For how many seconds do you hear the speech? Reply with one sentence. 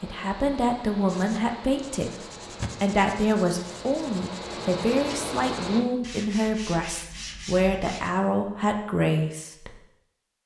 The speech can be heard for 10 seconds in total.